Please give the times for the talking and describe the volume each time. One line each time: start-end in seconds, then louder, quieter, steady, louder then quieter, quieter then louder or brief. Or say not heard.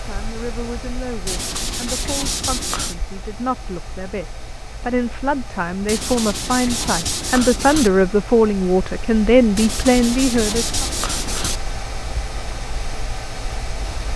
0.0-10.8 louder.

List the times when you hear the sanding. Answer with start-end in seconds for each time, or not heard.
1.2-3.0, 5.8-7.9, 9.6-11.6.